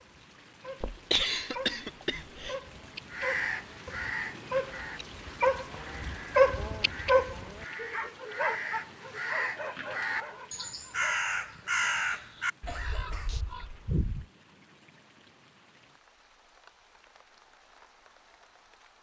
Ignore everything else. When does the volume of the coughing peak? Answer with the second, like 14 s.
1 s.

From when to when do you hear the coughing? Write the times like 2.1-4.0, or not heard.
0.8-2.5, 11.6-13.4.